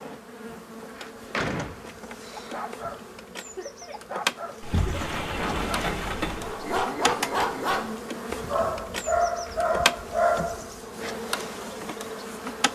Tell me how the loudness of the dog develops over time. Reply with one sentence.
The loudness of the dog goes up.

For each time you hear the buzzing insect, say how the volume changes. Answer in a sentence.
You can hear the buzzing insect from 0.0 to 12.6 s, getting louder.